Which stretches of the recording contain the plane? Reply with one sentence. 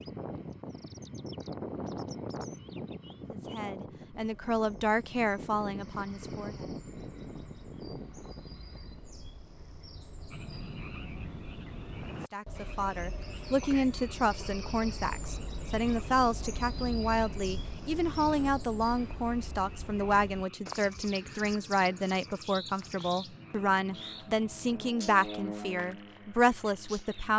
You can hear the plane from 0.0 to 9.2 s and from 23.1 to 27.3 s.